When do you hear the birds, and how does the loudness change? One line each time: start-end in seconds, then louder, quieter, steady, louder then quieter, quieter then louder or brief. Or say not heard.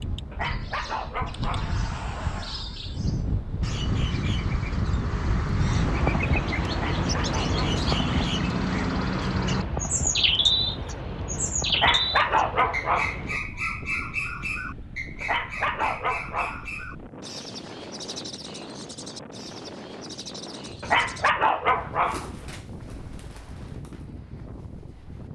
0.0-25.2 louder then quieter.